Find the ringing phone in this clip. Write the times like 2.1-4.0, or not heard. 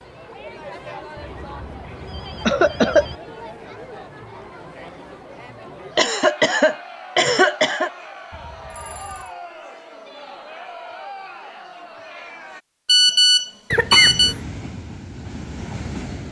1.1-3.2, 8.3-9.3, 12.8-14.3.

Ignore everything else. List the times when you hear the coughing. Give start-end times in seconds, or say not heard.
2.5-3.0, 6.0-7.9, 13.7-14.3.